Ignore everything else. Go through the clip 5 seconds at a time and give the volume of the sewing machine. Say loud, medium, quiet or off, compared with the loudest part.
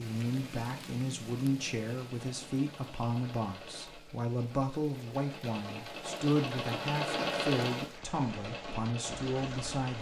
quiet, loud.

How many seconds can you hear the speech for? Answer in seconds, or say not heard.
10 s.